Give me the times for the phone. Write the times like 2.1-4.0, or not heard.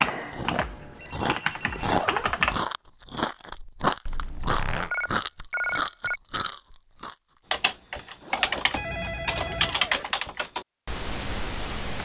0.1-2.0, 4.9-6.2, 8.7-9.8.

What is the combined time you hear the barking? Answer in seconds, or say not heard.
not heard.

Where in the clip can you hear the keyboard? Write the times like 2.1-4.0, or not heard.
0.0-2.6, 7.5-12.0.